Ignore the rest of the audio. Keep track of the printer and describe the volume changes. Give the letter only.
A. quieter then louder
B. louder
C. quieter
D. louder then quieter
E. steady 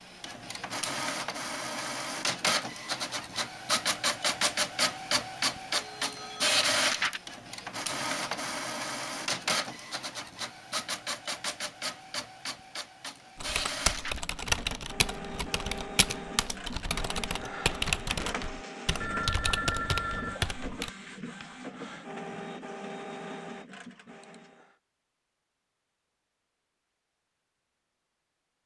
C.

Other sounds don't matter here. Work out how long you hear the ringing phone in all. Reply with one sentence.
The ringing phone can be heard for 2 seconds in total.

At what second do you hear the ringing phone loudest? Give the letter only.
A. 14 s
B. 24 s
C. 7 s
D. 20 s
D.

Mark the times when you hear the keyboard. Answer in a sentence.
You can hear the keyboard from 13.3 to 20.9 s.